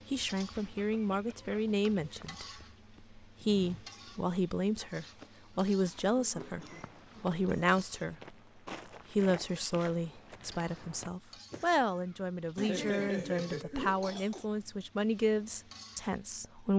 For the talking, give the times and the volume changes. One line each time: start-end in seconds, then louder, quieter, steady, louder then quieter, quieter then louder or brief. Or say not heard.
0.1-8.3 quieter then louder
9.1-16.7 steady.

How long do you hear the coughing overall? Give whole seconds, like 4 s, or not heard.
5 s.